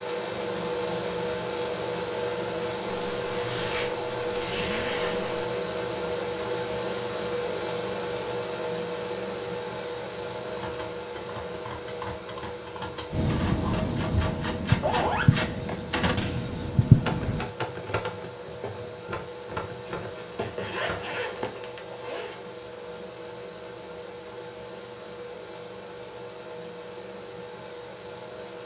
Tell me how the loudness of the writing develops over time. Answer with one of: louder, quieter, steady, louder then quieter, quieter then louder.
quieter then louder.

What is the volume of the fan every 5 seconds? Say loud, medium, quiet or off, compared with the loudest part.
loud, loud, medium, medium, medium, medium.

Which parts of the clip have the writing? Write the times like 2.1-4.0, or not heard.
13.1-17.5.